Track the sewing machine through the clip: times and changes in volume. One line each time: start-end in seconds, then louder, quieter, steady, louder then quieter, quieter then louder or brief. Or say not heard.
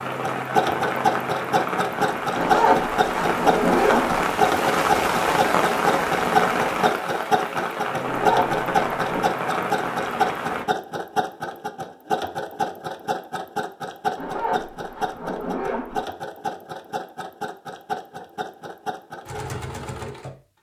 0.2-20.4 quieter.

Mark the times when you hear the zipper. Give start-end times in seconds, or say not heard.
2.4-4.2, 8.1-9.3, 14.2-16.1.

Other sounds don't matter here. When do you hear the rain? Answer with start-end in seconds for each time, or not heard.
0.0-10.7.